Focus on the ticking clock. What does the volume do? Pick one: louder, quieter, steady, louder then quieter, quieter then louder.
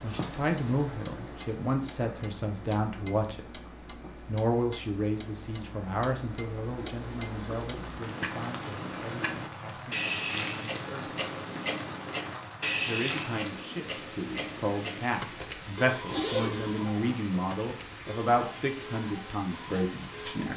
louder then quieter.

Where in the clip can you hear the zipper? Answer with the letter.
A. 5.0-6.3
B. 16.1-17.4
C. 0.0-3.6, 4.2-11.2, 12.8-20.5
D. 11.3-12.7
B.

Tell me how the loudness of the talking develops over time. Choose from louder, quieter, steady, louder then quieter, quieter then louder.
quieter then louder.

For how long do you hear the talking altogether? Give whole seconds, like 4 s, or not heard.
18 s.